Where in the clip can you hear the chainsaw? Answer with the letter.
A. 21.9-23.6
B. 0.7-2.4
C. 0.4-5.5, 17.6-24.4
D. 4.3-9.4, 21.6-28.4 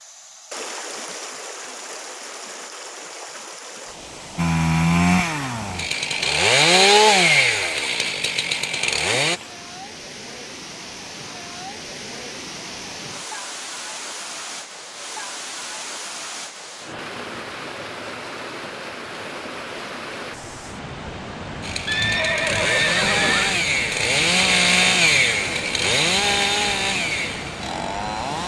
D.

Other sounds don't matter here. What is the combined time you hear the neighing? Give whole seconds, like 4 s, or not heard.
2 s.